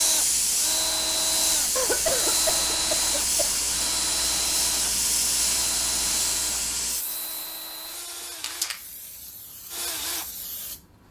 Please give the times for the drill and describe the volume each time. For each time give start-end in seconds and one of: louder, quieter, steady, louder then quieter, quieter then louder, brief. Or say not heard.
0.0-11.0 quieter.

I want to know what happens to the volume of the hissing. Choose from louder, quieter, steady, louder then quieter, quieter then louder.
quieter.